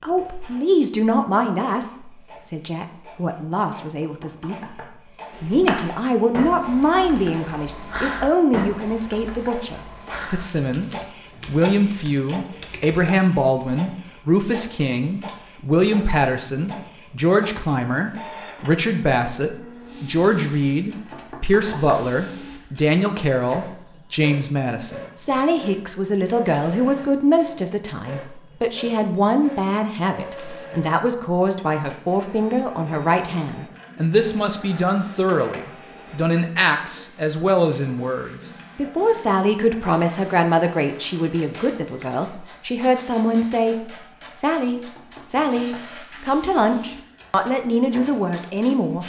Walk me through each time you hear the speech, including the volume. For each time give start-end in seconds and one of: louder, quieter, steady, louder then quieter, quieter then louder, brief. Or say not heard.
0.0-49.0 steady.